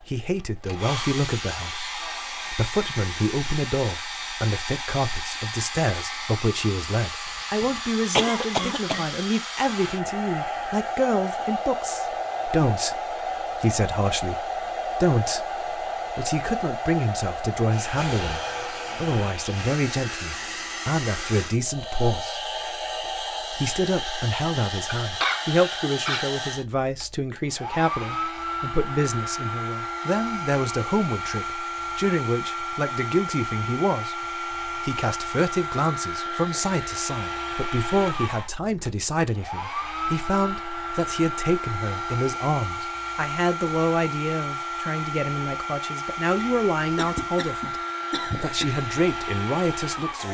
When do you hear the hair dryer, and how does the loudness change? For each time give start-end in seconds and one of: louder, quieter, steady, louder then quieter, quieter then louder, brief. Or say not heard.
0.0-50.2 steady.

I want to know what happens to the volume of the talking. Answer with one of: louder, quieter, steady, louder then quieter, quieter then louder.
steady.